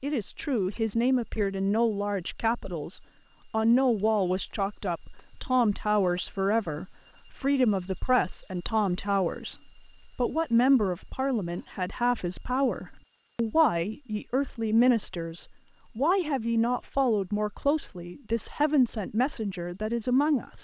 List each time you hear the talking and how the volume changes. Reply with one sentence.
The talking can be heard from 0.0 to 20.5 s, at a steady volume.